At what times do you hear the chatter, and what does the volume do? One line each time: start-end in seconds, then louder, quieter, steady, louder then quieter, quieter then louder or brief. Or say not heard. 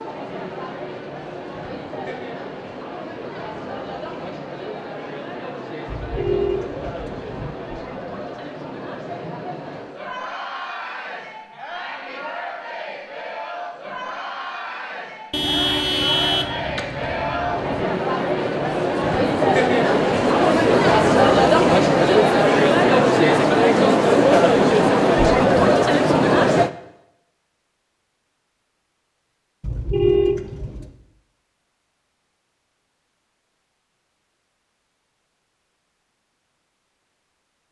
0.0-26.7 louder.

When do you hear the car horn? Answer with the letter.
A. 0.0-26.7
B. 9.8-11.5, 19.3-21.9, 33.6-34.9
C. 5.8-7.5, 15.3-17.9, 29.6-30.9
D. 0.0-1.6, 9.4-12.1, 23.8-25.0
C.